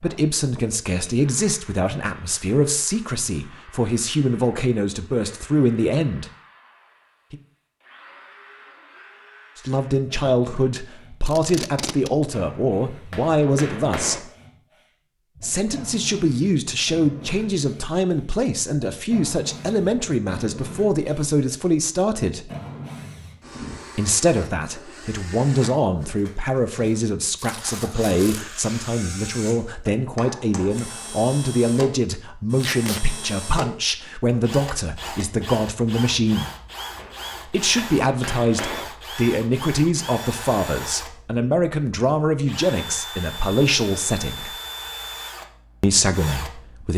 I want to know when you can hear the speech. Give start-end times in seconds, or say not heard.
0.0-6.3, 9.6-14.3, 15.4-22.5, 23.9-36.5, 37.5-44.5, 45.8-46.9.